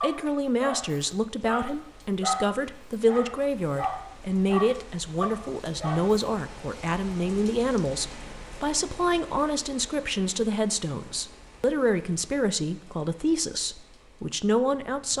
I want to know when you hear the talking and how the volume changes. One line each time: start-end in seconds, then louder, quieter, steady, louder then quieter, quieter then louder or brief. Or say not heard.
0.0-15.1 steady.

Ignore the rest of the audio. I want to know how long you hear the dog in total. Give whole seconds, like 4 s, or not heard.
6 s.